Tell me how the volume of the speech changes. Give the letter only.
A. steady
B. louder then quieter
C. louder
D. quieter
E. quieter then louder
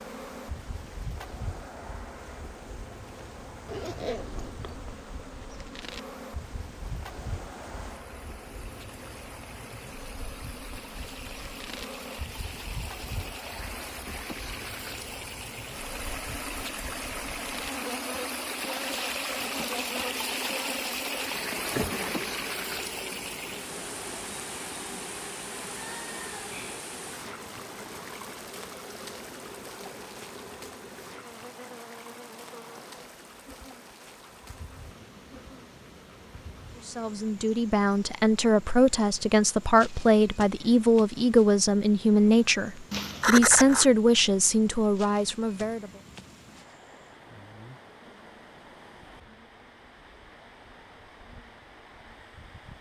A.